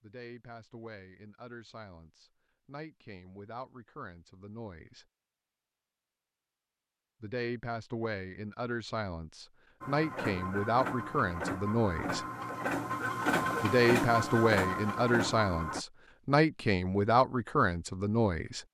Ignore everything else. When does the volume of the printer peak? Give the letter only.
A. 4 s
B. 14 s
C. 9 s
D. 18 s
B.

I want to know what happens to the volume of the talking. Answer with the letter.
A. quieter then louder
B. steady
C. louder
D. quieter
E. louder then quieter
C.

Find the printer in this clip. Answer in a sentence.
The printer can be heard from 9.8 to 15.8 s.